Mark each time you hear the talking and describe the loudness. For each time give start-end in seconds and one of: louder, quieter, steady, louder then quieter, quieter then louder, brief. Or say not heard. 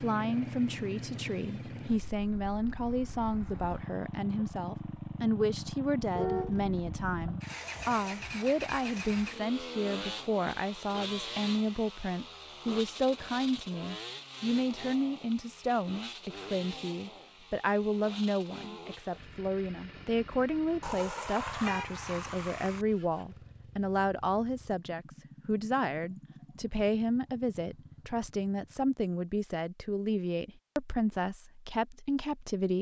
0.0-32.7 steady.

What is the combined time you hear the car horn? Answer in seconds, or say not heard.
3 s.